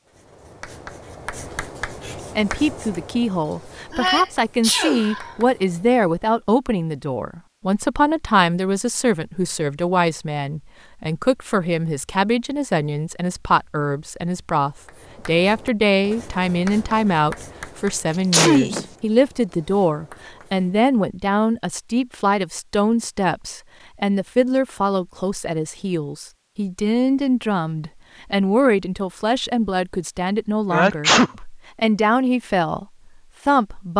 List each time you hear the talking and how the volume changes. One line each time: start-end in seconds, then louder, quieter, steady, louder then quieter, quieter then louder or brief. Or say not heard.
2.4-32.9 steady
33.5-33.9 brief.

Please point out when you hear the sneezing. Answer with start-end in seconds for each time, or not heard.
3.9-5.3, 18.3-18.9, 30.7-31.3.